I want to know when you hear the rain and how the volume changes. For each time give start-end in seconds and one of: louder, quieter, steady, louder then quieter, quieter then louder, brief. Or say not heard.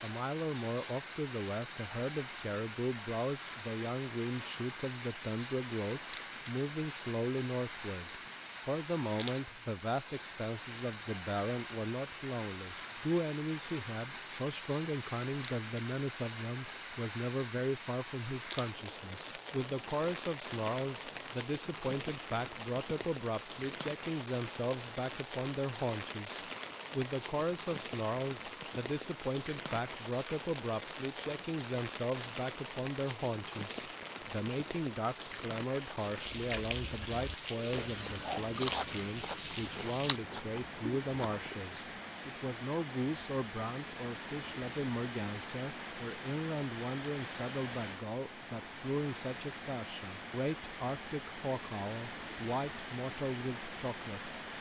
0.0-54.5 steady.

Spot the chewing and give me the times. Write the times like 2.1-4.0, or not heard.
36.0-41.5.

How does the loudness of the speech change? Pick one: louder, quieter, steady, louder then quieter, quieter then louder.
steady.